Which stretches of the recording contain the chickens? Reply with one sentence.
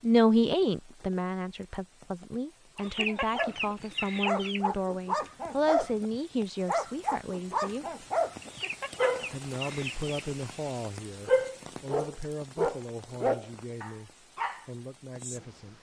The chickens can be heard from 2.8 to 4.7 s and from 8.4 to 10.1 s.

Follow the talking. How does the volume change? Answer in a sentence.
The loudness of the talking goes down.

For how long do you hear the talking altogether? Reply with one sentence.
The talking can be heard for 14 seconds in total.